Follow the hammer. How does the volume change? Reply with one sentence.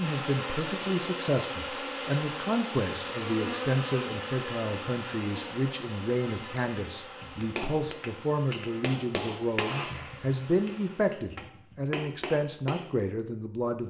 The volume of the hammer goes down, then up.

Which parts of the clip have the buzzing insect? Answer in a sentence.
You can hear the buzzing insect from 0.0 to 11.2 s.